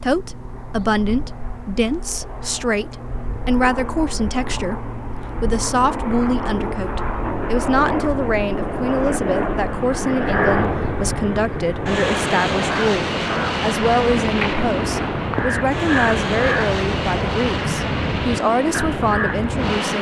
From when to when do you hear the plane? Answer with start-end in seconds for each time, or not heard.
0.0-19.9.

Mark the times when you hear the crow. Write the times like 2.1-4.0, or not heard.
10.2-19.8.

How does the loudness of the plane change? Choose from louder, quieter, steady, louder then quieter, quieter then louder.
louder.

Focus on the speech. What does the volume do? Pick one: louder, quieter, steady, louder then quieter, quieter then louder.
steady.